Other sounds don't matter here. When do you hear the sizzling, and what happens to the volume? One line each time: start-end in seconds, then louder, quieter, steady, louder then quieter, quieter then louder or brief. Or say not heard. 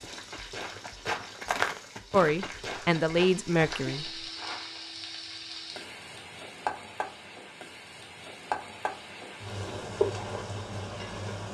0.0-11.4 louder.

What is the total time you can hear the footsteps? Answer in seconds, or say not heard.
5 s.